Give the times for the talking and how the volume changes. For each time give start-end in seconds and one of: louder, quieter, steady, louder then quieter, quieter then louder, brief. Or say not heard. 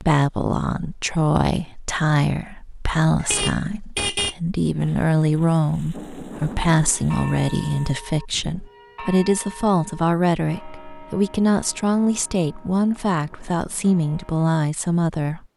0.0-15.4 steady.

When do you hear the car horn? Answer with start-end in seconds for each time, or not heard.
3.1-4.3.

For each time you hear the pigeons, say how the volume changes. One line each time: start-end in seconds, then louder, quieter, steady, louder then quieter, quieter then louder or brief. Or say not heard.
not heard.